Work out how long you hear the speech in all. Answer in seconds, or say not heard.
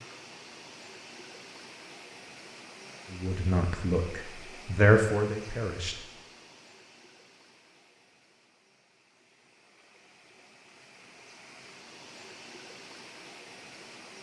3 s.